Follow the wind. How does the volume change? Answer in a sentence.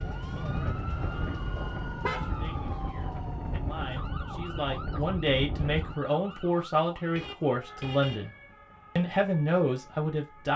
The loudness of the wind stays about the same.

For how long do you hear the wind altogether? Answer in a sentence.
The wind can be heard for 6 seconds in total.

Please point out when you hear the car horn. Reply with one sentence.
The car horn can be heard from 0.8 to 2.3 s and from 7.0 to 8.2 s.